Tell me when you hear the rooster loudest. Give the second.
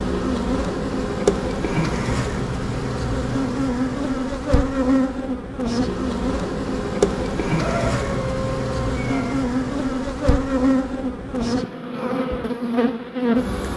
8 s.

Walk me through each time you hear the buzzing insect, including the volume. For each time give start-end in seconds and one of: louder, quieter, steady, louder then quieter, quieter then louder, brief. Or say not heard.
0.0-13.7 steady.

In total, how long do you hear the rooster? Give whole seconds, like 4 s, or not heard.
2 s.